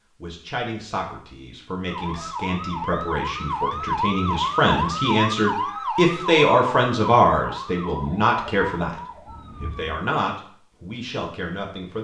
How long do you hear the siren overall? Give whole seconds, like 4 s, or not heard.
8 s.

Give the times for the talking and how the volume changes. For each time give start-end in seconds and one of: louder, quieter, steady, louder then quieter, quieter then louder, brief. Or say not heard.
0.2-11.9 louder then quieter.